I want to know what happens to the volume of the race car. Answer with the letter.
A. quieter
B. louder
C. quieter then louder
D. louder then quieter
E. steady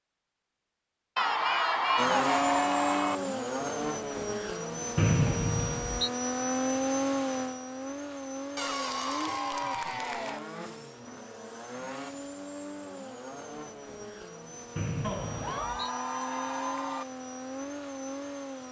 A.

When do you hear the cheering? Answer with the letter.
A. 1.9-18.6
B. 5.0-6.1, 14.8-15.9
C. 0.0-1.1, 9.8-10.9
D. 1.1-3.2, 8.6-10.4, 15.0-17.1
D.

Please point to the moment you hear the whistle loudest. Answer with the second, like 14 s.
5 s.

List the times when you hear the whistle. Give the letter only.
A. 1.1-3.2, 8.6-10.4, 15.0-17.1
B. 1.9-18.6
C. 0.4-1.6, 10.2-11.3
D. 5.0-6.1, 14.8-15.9
D.